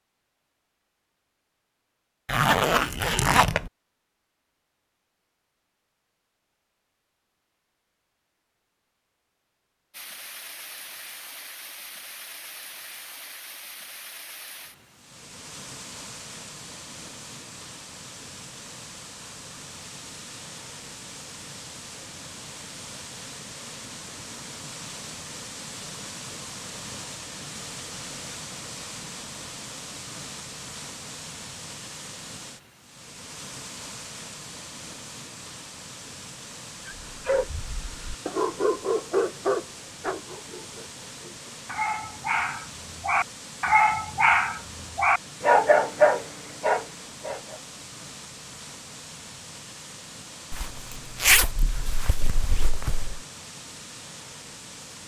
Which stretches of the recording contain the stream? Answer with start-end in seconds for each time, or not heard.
9.9-55.0.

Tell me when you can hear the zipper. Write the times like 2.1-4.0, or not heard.
2.2-3.7, 50.5-53.2.